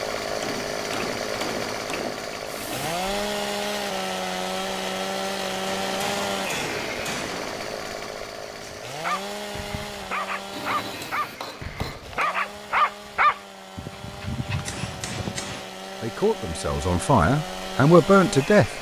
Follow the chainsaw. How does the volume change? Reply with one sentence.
The volume of the chainsaw goes down, then up.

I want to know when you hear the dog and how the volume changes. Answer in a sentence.
The dog can be heard from 9.0 to 15.6 s, getting louder then quieter.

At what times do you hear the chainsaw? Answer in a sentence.
The chainsaw can be heard from 0.0 to 18.7 s.